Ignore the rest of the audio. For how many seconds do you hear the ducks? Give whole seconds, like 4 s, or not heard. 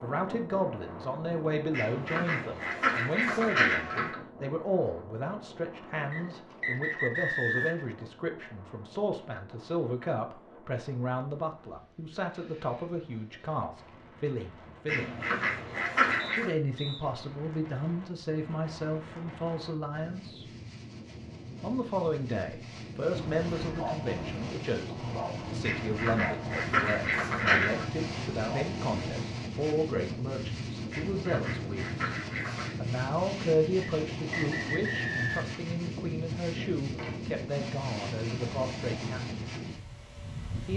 8 s.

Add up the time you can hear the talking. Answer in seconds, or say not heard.
37 s.